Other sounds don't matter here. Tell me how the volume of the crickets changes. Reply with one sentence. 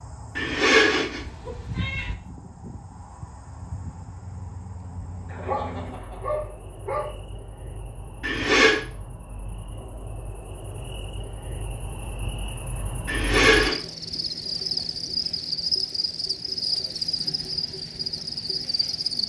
The volume of the crickets goes up.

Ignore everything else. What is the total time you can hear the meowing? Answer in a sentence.
The meowing can be heard for 3 seconds in total.